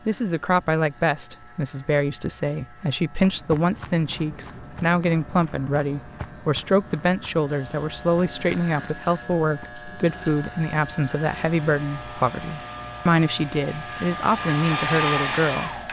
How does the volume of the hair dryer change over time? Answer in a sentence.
The volume of the hair dryer goes up.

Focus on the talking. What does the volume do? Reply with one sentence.
The loudness of the talking stays about the same.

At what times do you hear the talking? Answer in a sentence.
The talking can be heard from 0.1 to 15.8 s.